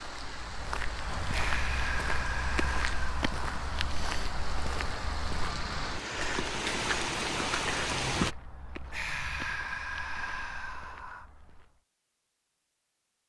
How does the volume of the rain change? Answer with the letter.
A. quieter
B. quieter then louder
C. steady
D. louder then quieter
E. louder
E.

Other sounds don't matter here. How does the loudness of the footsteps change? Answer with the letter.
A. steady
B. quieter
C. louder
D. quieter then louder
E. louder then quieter
B.